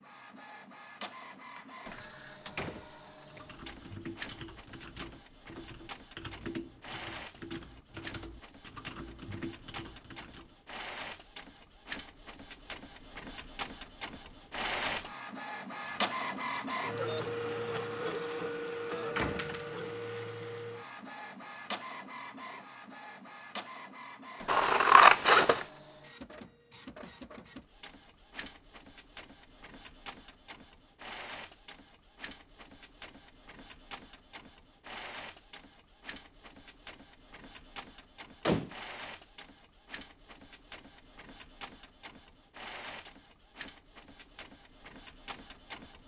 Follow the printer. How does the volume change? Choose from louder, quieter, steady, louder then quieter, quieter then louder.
louder then quieter.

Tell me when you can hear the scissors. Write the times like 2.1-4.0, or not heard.
15.8-16.6, 24.4-25.6.